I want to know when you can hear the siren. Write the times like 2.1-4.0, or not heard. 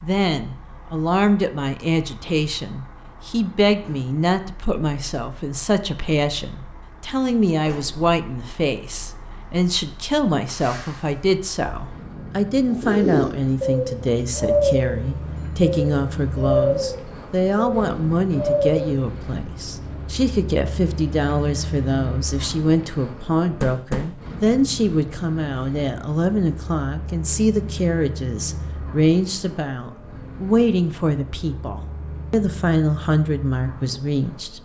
not heard.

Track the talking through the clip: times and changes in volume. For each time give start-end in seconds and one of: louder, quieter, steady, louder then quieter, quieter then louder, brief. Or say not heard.
0.0-34.5 steady.